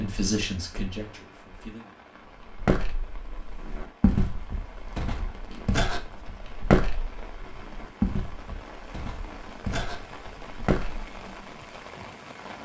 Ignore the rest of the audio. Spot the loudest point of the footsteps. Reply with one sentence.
The loudest moment of the footsteps is at 7 seconds.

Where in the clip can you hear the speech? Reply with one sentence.
The speech can be heard from 0.0 to 1.9 s.